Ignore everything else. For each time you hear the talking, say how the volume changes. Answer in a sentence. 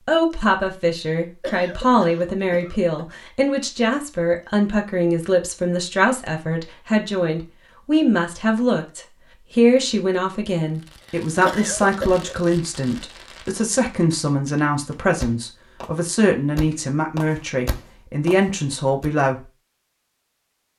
The talking can be heard from 0.1 to 19.4 s, at a steady volume.